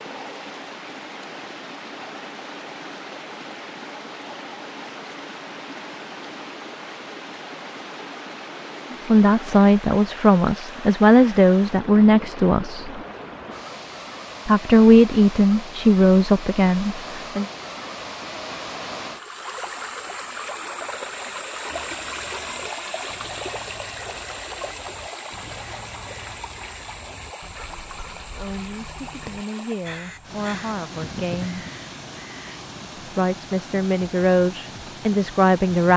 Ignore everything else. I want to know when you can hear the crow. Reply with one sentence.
The crow can be heard from 21.6 to 32.6 s.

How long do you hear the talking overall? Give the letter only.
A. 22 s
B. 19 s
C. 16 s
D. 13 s
D.